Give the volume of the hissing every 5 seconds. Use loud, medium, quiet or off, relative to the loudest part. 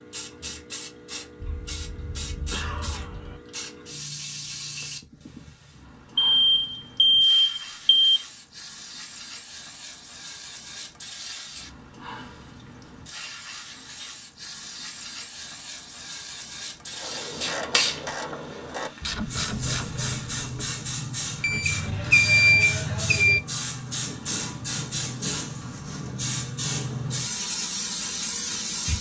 medium, quiet, medium, loud, loud, loud.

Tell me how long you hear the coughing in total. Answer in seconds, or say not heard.
2 s.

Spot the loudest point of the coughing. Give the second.
3 s.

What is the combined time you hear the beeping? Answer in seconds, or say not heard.
4 s.